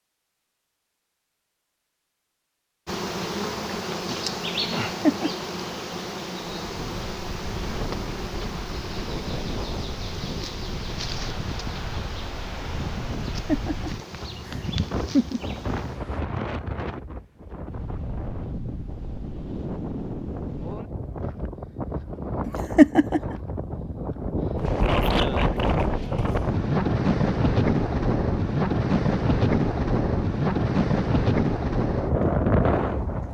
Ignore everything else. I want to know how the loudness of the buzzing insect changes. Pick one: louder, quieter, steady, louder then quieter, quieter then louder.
quieter.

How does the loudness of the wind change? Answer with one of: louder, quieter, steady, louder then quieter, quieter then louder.
louder.